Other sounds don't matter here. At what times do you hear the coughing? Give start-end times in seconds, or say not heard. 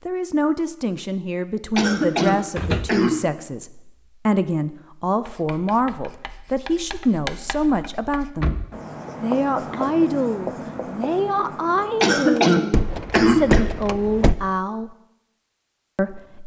1.8-3.2, 12.0-13.7.